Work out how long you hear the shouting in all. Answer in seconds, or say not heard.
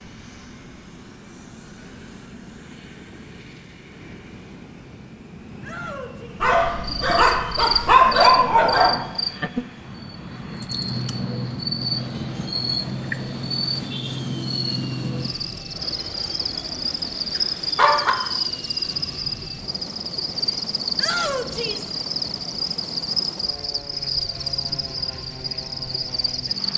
2 s.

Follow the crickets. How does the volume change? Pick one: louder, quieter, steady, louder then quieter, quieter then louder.
steady.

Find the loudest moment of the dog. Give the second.
8 s.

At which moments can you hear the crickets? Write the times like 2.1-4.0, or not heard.
6.7-26.7.